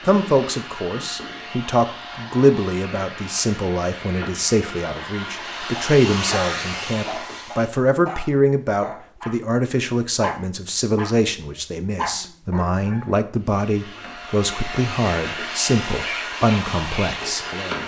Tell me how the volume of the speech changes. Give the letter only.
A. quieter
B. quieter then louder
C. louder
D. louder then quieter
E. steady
E.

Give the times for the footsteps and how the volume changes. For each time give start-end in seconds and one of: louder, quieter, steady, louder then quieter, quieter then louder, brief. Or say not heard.
not heard.